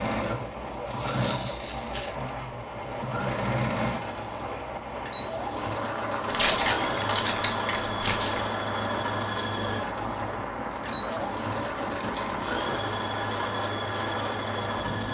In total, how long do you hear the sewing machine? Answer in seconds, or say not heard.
15 s.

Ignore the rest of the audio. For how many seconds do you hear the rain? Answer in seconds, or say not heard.
15 s.